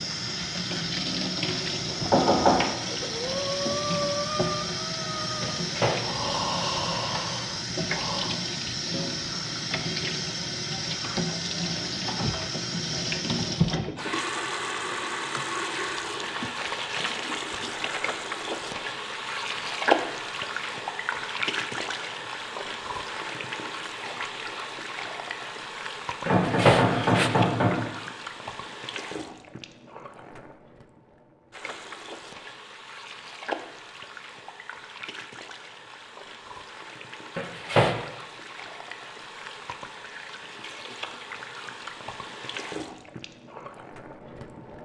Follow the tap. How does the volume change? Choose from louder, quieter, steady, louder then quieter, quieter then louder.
quieter.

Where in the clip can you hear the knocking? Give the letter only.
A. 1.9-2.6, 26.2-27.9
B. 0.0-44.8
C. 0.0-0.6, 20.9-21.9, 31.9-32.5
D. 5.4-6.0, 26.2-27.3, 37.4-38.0
A.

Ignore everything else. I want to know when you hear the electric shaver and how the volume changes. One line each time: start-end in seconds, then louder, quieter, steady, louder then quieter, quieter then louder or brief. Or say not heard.
not heard.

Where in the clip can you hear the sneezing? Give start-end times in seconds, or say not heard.
5.4-6.0, 26.2-27.3, 37.4-38.0.